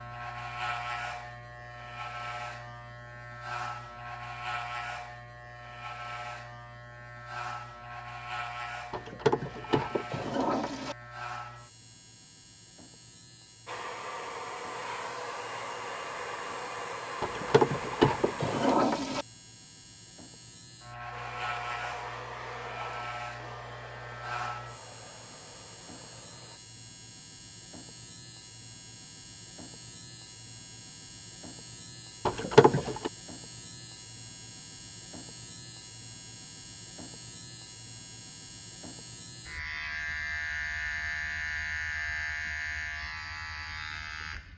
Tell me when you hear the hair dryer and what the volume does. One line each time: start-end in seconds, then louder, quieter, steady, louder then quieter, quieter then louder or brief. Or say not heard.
13.7-18.8 steady
21.1-26.6 quieter.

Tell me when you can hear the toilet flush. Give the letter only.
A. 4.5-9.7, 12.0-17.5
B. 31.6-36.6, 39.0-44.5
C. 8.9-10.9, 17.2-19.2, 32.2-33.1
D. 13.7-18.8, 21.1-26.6
C.